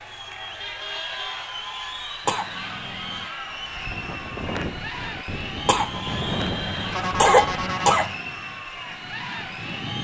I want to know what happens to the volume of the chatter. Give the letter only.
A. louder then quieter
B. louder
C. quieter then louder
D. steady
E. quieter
D.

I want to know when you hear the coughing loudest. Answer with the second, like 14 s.
7 s.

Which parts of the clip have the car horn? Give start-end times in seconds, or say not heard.
0.6-1.5, 6.0-8.1.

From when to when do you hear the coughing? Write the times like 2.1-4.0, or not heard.
2.2-3.3, 5.7-8.2.